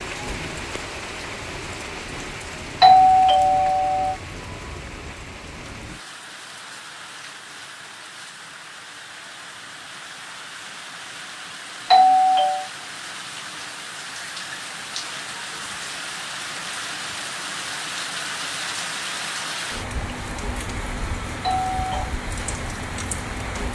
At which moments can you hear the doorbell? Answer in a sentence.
The doorbell can be heard from 2.8 to 4.2 s, from 11.9 to 12.7 s and from 21.4 to 22.1 s.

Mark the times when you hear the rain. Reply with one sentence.
You can hear the rain from 0.0 to 23.7 s.